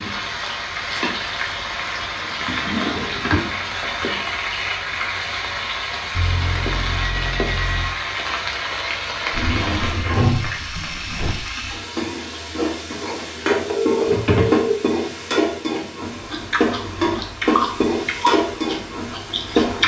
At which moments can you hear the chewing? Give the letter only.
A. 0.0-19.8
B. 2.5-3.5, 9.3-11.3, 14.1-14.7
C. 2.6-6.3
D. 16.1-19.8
D.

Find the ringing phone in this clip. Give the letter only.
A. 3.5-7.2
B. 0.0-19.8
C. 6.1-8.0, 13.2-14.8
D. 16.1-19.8
C.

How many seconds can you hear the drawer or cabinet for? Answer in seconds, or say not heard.
4 s.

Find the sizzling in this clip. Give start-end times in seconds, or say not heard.
0.0-19.8.